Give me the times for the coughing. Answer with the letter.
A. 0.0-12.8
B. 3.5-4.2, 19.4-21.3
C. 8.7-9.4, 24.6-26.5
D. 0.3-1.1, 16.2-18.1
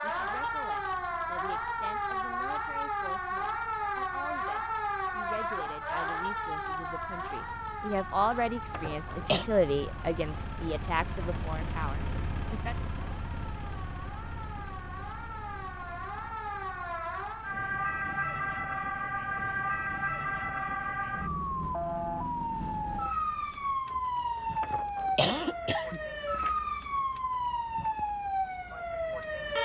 C.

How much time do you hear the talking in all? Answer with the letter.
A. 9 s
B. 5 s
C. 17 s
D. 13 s
D.